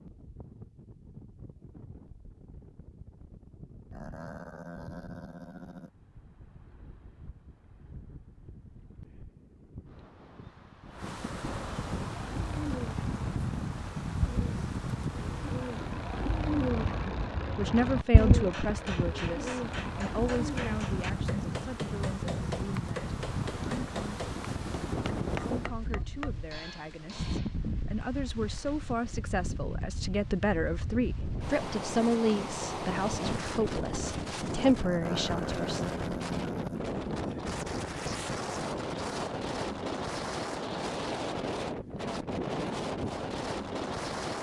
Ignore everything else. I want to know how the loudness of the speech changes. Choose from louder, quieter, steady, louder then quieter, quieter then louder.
quieter then louder.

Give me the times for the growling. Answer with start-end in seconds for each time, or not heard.
3.9-5.9, 34.8-36.8.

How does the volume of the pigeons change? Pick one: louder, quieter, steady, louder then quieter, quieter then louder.
louder then quieter.